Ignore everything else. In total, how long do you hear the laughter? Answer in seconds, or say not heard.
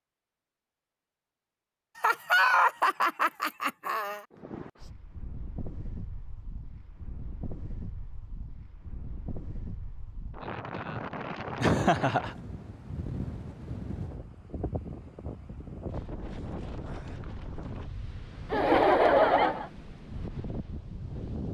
4 s.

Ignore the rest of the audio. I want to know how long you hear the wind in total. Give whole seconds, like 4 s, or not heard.
17 s.